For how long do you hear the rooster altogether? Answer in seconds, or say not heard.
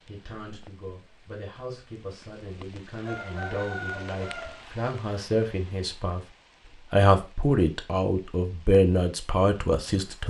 2 s.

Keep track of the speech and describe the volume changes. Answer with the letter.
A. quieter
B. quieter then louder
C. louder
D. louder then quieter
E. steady
C.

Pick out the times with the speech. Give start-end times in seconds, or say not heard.
0.1-6.2, 6.9-10.2.